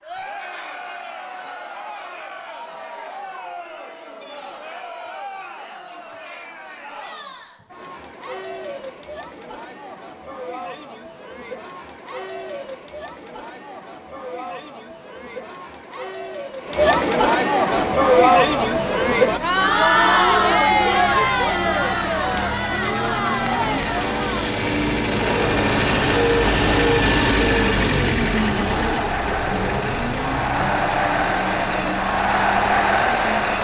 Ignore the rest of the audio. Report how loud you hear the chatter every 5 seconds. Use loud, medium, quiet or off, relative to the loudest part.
quiet, quiet, quiet, loud, loud, medium, loud.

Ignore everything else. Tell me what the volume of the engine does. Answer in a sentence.
The loudness of the engine goes up, then down.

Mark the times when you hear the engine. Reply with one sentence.
The engine can be heard from 17.9 to 33.5 s.